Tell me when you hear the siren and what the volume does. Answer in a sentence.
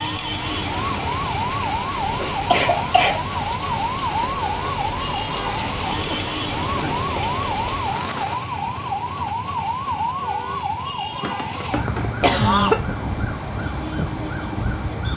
You can hear the siren from 0.0 to 15.1 s, at a steady volume.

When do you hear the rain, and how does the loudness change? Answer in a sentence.
You can hear the rain from 0.0 to 8.5 s, at a steady volume.